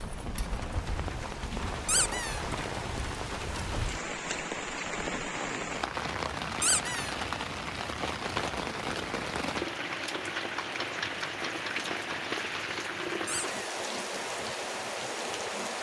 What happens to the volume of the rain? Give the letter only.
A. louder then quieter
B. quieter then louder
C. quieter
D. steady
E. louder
D.